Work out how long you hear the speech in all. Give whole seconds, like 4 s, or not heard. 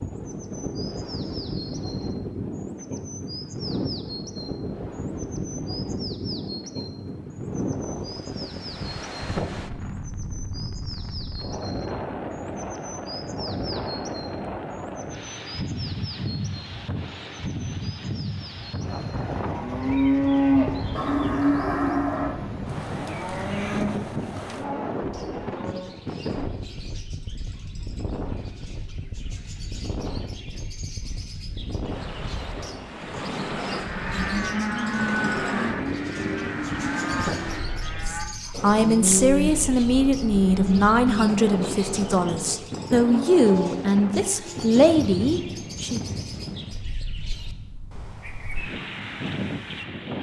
8 s.